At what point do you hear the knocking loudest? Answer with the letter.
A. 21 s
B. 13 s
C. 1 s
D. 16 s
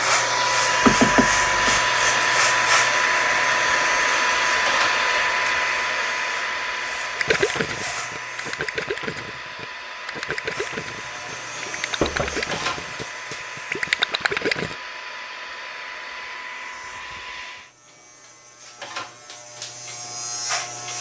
C.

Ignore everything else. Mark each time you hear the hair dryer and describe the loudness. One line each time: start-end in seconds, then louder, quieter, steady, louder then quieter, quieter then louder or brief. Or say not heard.
0.0-17.7 quieter.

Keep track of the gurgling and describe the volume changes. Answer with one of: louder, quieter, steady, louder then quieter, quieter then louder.
louder.